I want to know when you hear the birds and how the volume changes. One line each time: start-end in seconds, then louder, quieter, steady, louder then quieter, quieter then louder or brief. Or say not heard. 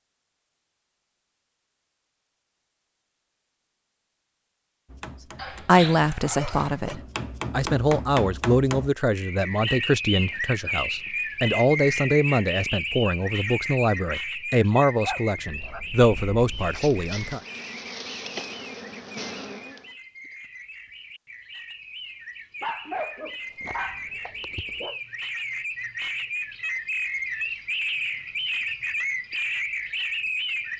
9.1-30.7 quieter then louder.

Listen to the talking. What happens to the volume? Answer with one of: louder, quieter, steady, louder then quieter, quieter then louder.
steady.